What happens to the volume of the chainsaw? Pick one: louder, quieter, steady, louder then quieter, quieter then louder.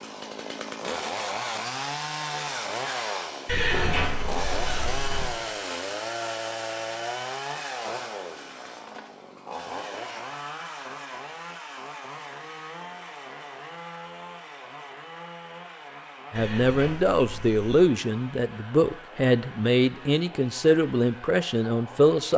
quieter.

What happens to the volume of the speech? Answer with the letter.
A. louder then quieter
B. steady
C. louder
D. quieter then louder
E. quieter
B.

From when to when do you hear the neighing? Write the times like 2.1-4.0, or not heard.
3.5-5.3, 16.4-17.9.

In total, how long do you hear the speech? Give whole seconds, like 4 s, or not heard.
6 s.